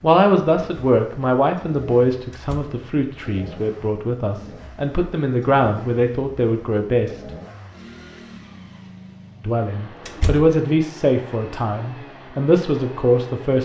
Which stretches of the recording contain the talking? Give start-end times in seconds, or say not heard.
0.0-7.1, 9.4-13.6.